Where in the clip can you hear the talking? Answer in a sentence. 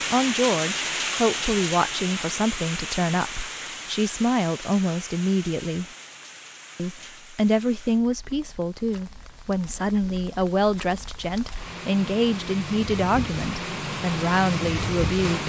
You can hear the talking from 0.1 to 5.8 s and from 6.8 to 15.4 s.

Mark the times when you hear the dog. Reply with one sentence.
You can't hear the dog here.